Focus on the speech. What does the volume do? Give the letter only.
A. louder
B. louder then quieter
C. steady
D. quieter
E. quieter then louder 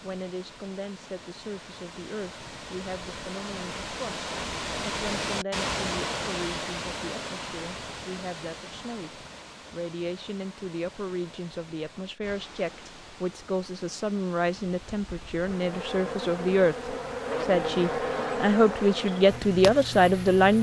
A.